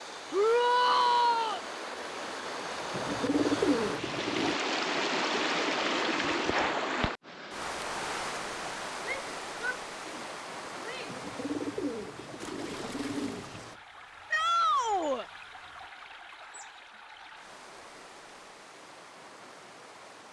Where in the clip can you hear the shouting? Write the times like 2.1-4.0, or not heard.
0.3-1.6, 9.1-11.2, 14.3-15.2.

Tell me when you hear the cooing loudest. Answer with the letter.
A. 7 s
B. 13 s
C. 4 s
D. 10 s
C.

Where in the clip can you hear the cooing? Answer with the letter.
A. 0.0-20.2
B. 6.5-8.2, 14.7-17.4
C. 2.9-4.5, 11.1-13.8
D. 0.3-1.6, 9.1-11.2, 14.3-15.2
C.